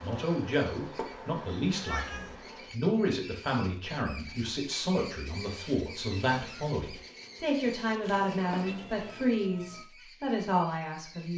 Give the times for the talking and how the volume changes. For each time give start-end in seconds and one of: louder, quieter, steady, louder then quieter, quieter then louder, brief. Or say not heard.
0.0-11.3 steady.